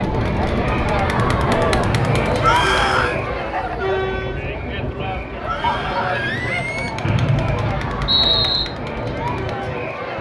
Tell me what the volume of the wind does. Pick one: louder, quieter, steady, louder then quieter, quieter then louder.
quieter.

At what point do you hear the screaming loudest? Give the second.
3 s.